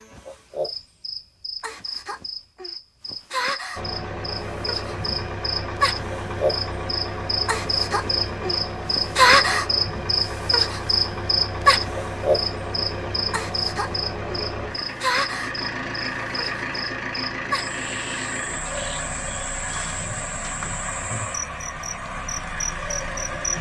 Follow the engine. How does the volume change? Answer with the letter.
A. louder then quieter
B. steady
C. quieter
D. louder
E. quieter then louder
B.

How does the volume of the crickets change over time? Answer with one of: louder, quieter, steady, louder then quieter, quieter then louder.
louder then quieter.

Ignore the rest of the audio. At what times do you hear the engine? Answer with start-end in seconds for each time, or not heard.
3.8-23.5.